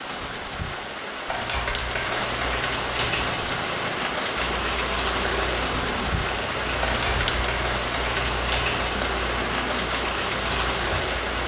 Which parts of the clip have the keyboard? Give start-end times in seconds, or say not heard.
1.2-3.4, 6.8-8.8.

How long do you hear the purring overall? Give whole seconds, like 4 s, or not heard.
8 s.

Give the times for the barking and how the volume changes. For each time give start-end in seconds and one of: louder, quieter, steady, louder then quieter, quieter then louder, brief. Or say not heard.
not heard.